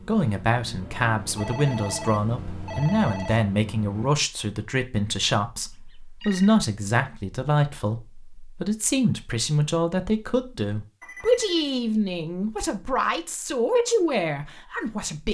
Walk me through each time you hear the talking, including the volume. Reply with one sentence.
The talking can be heard from 0.1 to 15.2 s, at a steady volume.